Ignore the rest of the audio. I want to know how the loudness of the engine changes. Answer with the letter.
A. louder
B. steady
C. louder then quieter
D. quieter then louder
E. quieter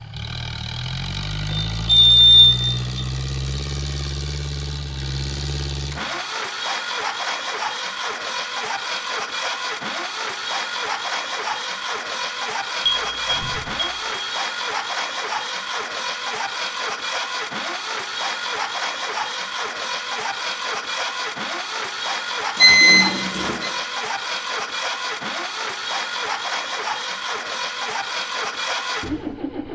B.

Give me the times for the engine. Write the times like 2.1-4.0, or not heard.
0.0-29.6.